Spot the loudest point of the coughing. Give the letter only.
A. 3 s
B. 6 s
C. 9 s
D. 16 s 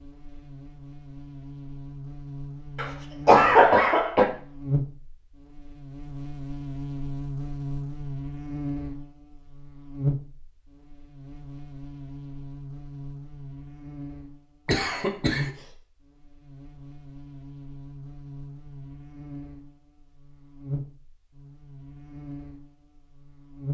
A.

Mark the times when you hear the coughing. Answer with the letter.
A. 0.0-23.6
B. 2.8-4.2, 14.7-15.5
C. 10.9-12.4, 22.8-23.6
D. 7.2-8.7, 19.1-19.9
B.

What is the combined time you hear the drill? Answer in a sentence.
The drill can't be heard in this clip.